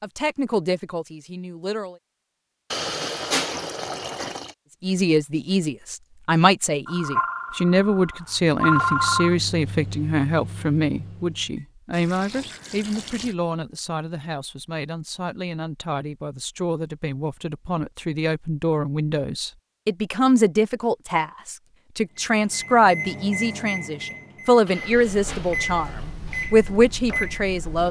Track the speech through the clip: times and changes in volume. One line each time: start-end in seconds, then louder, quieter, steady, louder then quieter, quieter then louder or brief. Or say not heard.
0.0-2.0 brief
4.8-27.8 quieter then louder.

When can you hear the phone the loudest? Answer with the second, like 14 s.
9 s.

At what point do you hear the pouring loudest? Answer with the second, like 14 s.
3 s.